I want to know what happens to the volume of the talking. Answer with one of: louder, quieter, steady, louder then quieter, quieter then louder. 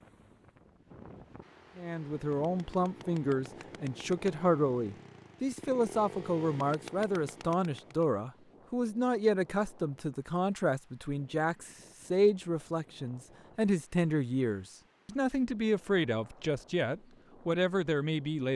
steady.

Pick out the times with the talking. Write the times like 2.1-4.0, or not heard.
1.8-18.5.